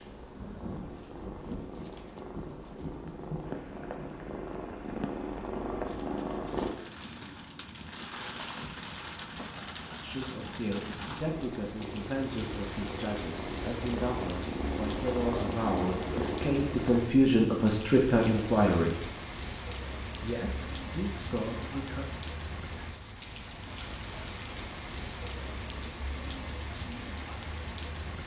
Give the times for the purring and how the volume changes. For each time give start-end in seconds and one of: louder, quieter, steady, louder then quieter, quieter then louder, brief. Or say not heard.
0.0-6.7 louder
11.2-17.0 louder.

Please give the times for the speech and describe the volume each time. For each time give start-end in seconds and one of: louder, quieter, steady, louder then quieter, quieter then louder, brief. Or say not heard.
10.0-19.1 louder
20.1-22.1 brief.